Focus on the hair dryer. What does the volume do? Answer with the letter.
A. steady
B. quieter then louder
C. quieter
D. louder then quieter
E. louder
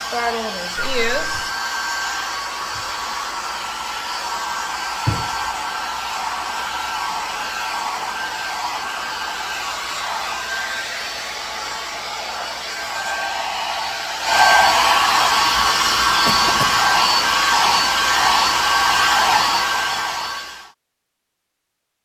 E.